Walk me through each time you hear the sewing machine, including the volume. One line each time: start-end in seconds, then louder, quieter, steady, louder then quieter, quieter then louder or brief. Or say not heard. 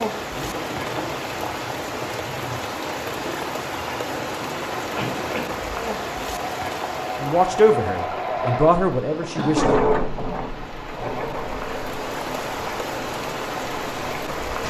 0.2-14.6 louder then quieter.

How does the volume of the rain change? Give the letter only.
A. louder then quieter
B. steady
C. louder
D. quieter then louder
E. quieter
D.